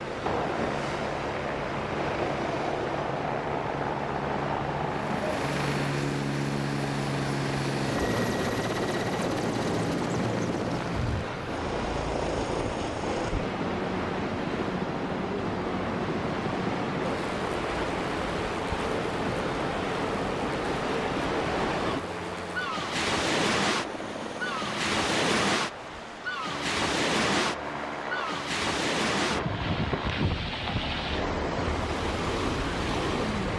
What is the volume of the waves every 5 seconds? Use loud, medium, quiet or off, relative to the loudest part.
medium, medium, medium, loud, loud, loud, loud.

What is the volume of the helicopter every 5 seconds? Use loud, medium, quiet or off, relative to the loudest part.
loud, loud, loud, medium, medium, medium, medium.